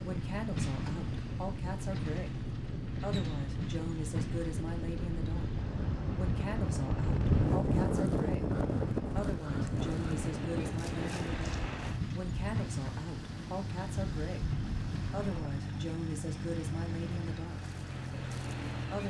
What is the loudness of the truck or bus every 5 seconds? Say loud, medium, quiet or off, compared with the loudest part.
loud, medium, loud, loud.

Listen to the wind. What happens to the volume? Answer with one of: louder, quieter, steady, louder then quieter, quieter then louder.
louder then quieter.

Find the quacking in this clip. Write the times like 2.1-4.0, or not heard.
not heard.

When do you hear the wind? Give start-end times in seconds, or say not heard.
0.0-15.6.